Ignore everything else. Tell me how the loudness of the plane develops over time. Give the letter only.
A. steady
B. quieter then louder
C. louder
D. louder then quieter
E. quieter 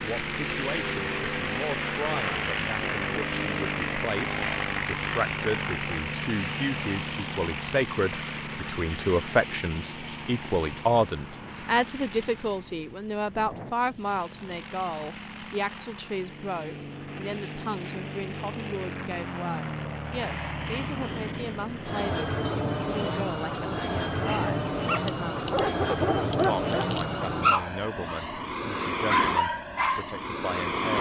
B.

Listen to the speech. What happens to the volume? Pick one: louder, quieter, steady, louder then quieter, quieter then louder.
louder then quieter.